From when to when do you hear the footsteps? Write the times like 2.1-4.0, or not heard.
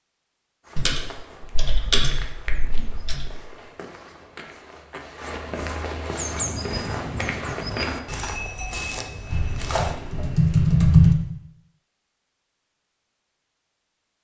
0.6-9.9.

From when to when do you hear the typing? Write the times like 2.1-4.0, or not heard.
0.8-3.3, 9.3-11.2.